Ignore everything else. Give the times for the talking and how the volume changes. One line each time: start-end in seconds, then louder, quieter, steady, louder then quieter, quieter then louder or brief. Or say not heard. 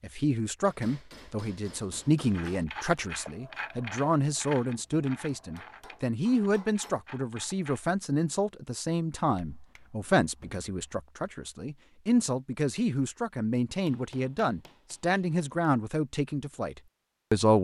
0.0-17.5 steady.